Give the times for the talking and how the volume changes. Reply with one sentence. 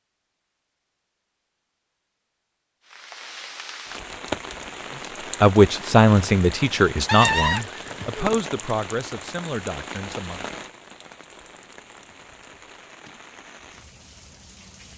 You can hear the talking from 5.4 to 10.4 s, getting quieter.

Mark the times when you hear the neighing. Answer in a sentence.
You can hear the neighing from 7.0 to 8.4 s.